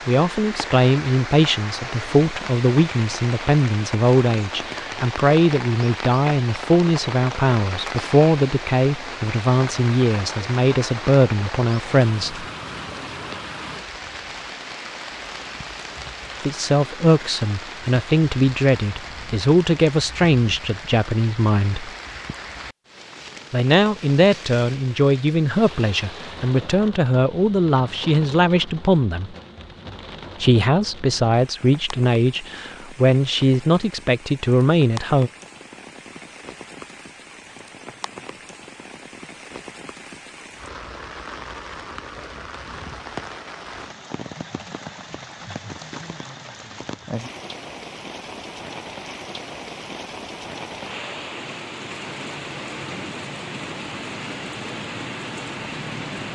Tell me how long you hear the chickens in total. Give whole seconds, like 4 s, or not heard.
not heard.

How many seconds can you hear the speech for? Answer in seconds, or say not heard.
29 s.